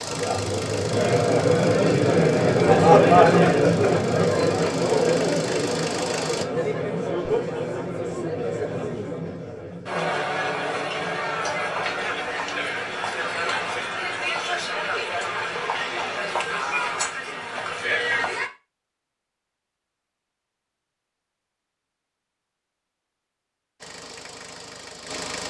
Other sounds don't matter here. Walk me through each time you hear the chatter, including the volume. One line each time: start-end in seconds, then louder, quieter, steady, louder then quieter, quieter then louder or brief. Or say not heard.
0.0-18.5 quieter.